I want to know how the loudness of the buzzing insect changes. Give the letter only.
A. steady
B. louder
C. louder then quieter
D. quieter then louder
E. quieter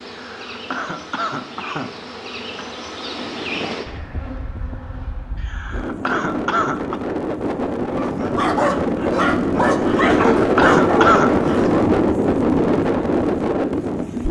C.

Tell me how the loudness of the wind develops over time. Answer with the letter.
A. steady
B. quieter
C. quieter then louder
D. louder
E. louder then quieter
D.